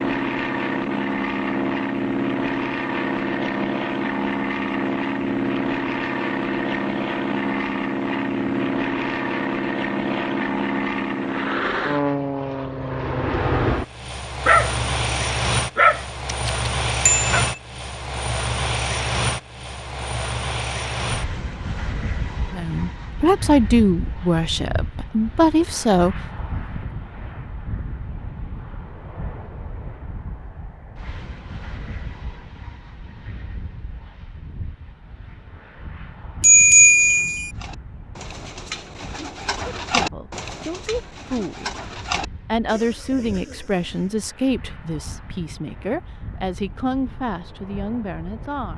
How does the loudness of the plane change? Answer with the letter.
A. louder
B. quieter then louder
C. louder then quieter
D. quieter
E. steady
D.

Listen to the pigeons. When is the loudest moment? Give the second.
40 s.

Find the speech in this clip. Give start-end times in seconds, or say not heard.
22.5-26.1, 39.6-41.7, 42.5-48.7.